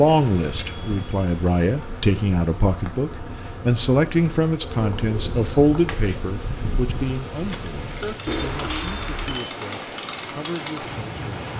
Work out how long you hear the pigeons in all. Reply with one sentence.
You can hear the pigeons for 5 seconds altogether.